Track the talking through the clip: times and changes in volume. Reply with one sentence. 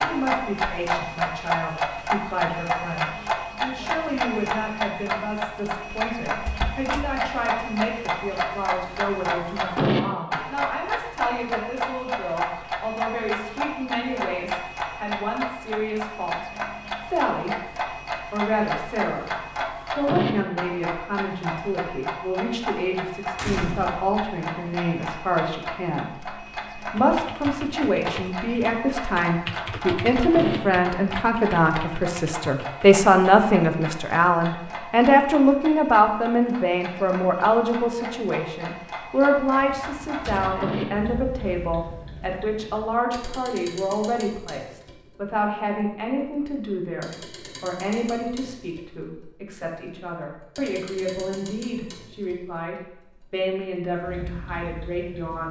You can hear the talking from 0.0 to 17.6 s, at a steady volume; briefly from 18.3 to 19.3 s; and from 19.9 to 55.4 s, getting louder then quieter.